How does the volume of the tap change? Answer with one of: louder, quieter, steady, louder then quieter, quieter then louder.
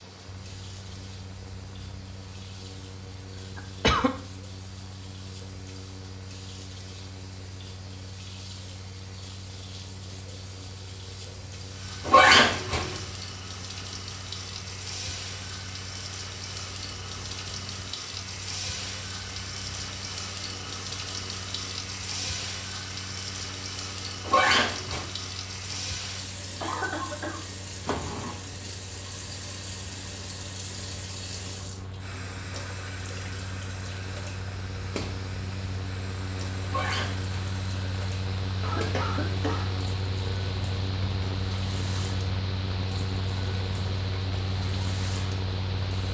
louder then quieter.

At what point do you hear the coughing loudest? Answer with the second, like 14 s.
4 s.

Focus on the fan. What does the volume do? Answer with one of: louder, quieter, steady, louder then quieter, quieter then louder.
louder.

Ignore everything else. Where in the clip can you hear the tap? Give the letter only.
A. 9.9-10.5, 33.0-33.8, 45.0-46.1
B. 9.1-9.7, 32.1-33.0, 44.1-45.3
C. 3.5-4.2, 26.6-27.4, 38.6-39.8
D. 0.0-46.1
D.